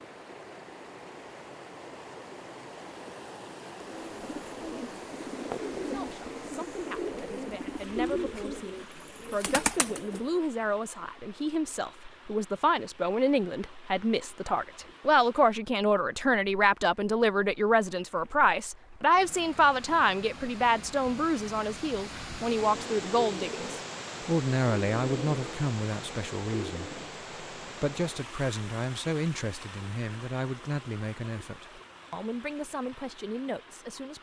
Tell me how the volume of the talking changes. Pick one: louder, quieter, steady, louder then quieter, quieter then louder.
louder then quieter.